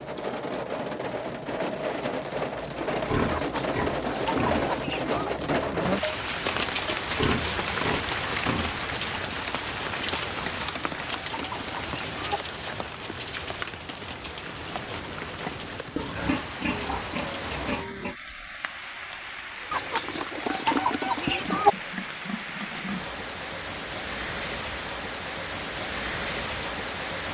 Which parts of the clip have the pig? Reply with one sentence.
The pig can be heard from 2.9 to 4.7 s, from 7.0 to 8.8 s, from 15.9 to 18.1 s and from 21.4 to 23.1 s.